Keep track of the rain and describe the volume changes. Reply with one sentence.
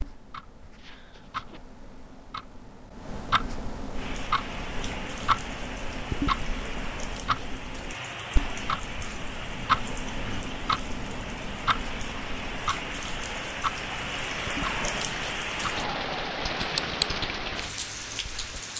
The loudness of the rain goes up.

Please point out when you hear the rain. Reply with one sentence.
You can hear the rain from 4.0 to 18.7 s.